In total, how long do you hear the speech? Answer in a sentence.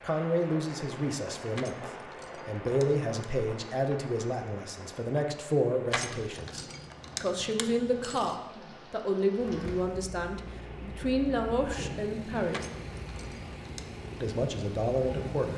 The speech can be heard for 14 seconds in total.